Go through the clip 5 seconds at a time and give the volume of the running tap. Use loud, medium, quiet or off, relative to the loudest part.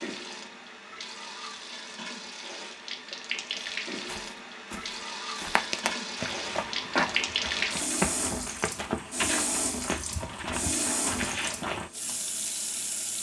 medium, loud, loud.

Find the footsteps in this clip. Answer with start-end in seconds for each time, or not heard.
3.5-11.9.